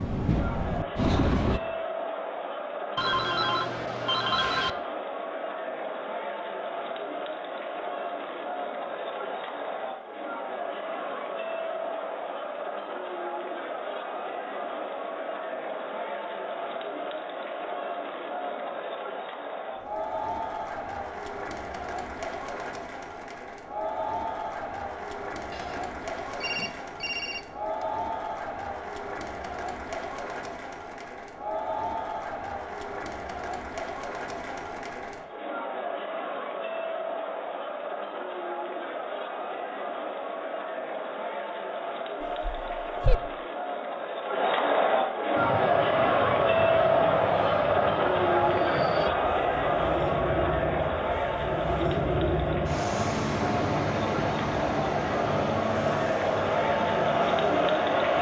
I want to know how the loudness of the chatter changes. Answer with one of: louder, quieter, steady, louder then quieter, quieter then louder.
louder.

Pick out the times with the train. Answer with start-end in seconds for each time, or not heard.
0.0-1.6, 45.4-58.1.